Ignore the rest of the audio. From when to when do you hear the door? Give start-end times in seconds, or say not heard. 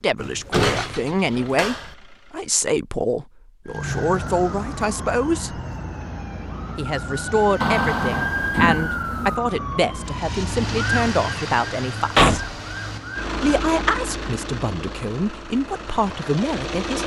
0.2-1.9, 7.6-9.3, 12.2-12.6.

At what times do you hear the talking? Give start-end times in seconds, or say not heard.
0.0-5.6, 6.8-12.4, 13.4-17.0.